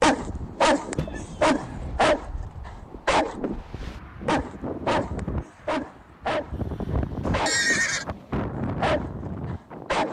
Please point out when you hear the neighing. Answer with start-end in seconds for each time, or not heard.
0.9-2.0, 7.2-8.1.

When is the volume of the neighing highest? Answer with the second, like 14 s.
8 s.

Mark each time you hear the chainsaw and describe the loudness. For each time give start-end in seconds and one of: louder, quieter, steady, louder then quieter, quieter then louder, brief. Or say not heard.
not heard.